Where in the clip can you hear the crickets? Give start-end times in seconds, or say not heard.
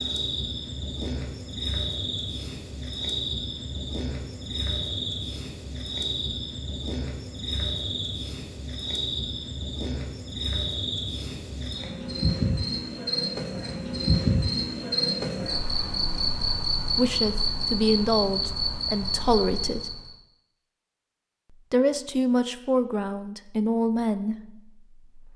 0.0-20.1.